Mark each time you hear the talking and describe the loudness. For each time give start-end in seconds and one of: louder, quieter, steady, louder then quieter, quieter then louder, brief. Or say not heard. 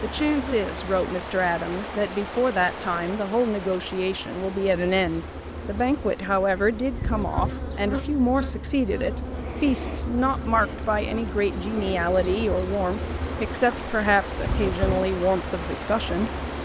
0.0-16.3 steady.